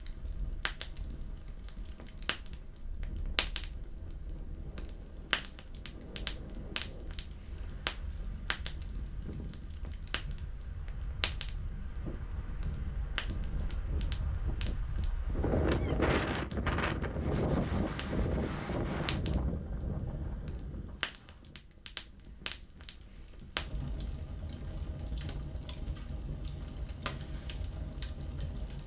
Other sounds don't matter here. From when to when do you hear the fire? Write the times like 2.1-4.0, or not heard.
0.0-28.8.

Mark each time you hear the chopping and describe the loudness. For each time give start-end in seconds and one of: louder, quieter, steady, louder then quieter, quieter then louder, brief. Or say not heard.
not heard.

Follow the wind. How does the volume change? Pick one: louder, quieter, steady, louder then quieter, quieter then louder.
louder.